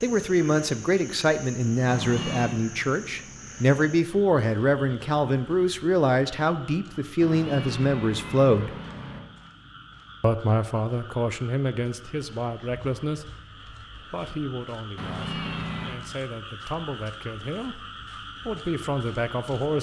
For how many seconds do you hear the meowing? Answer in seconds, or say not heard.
4 s.